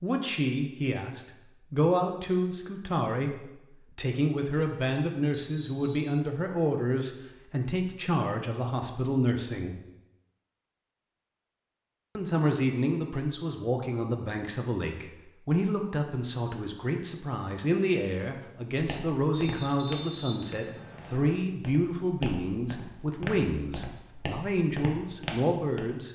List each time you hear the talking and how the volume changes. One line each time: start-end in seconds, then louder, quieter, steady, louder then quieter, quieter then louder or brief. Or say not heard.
0.0-9.8 steady
12.2-26.1 steady.